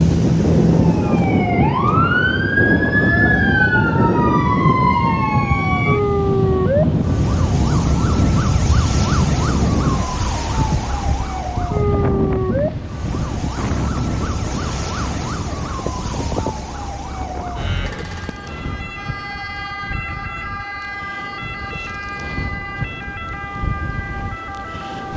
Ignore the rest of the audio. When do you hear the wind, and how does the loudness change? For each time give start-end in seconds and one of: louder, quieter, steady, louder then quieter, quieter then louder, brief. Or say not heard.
0.0-25.1 quieter.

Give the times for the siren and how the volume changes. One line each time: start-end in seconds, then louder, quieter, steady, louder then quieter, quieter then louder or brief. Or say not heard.
0.0-25.1 quieter.